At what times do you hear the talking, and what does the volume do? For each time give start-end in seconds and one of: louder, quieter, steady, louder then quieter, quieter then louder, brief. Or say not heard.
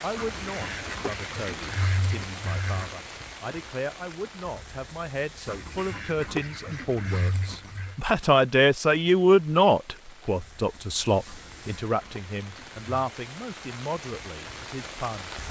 0.0-15.3 louder then quieter.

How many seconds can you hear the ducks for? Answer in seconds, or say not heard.
7 s.